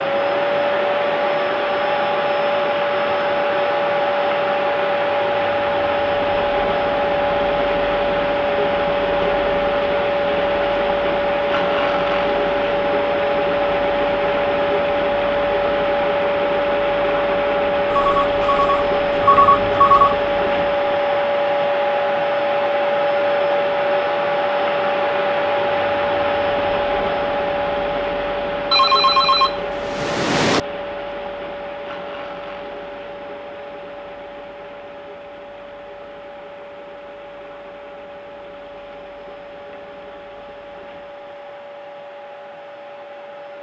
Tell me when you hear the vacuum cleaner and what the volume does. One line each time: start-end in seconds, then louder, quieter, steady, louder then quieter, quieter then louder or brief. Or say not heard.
0.0-43.5 quieter.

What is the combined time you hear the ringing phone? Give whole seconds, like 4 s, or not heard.
4 s.